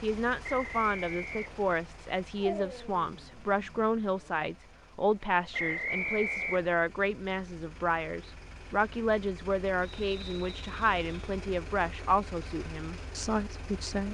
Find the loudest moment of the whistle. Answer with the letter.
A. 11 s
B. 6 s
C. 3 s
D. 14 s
B.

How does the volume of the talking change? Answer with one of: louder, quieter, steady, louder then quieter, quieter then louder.
steady.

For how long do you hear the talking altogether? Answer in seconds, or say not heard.
14 s.